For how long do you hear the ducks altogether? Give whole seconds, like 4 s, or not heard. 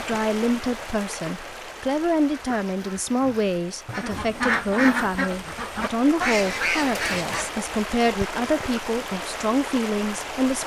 5 s.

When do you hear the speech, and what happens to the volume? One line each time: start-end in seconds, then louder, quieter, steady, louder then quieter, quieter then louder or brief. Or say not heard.
0.0-10.6 steady.